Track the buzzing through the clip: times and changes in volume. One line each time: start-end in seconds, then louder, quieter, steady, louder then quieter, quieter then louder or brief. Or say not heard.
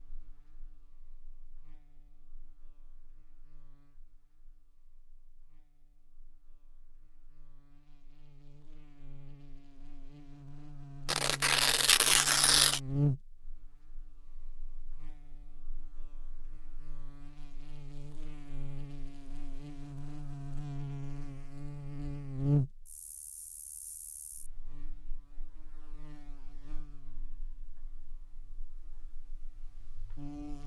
0.0-30.6 louder then quieter.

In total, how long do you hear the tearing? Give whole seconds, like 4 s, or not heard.
2 s.